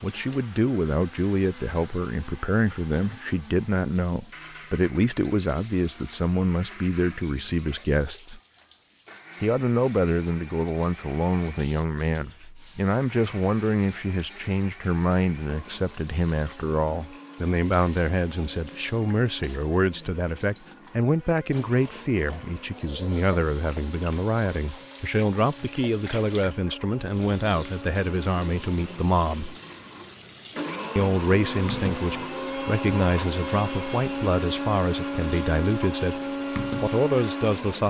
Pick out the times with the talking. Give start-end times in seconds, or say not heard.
0.0-8.4, 9.4-29.6, 30.9-36.2, 36.8-37.8.